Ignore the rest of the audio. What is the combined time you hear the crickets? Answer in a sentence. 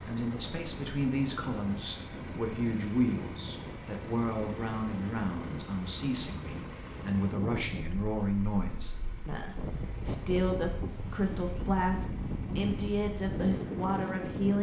The crickets can't be heard in this clip.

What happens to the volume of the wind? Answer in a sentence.
The loudness of the wind goes up.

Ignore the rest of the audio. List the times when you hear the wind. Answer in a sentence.
You can hear the wind from 0.0 to 14.5 s.